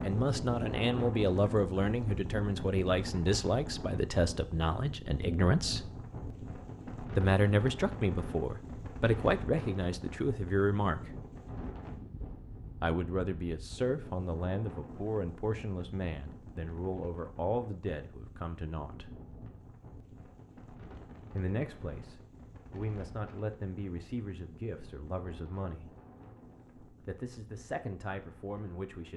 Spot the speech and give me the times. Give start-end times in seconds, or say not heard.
0.0-5.9, 7.2-11.2, 12.8-19.1, 21.3-25.9, 26.9-29.1.